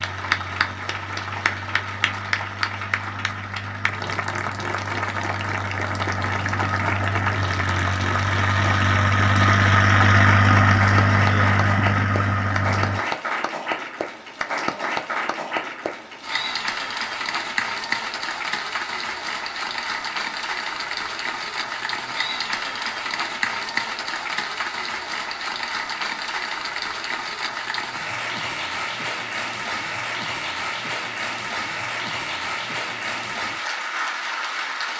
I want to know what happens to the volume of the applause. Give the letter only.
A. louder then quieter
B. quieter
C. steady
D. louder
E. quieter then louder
C.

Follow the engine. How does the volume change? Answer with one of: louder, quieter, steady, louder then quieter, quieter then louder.
louder.